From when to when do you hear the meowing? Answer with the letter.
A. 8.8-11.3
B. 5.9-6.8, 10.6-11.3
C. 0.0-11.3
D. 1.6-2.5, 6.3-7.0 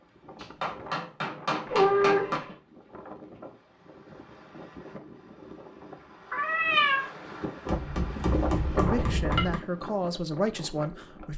D.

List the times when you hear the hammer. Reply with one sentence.
You can hear the hammer from 0.3 to 2.4 s and from 7.7 to 9.6 s.